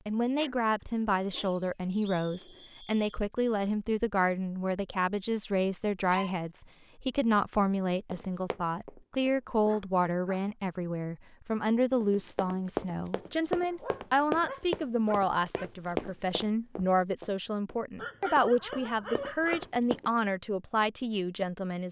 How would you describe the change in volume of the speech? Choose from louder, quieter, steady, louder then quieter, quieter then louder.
steady.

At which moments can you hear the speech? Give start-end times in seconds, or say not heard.
0.1-21.8.